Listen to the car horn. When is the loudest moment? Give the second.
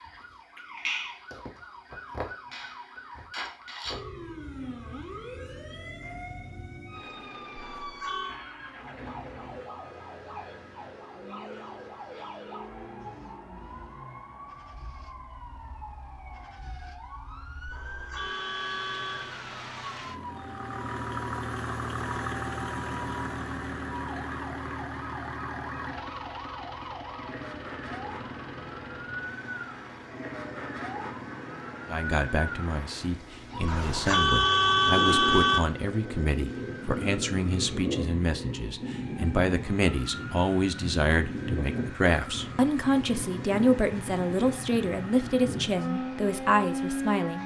35 s.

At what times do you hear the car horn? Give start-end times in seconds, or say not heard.
7.5-8.4, 17.6-19.4, 33.6-35.6.